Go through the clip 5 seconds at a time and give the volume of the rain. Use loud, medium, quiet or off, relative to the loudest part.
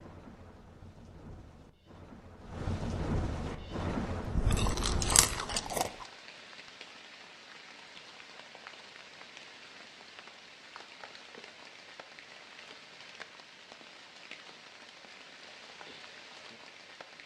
loud, medium, medium, medium.